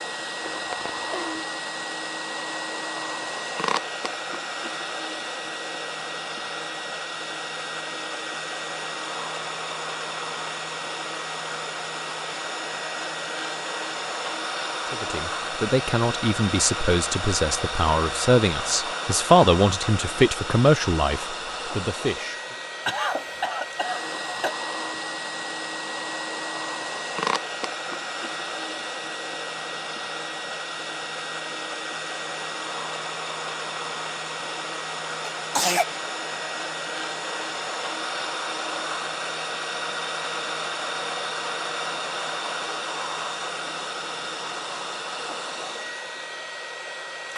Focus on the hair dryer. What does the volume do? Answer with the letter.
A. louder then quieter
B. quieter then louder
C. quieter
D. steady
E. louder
D.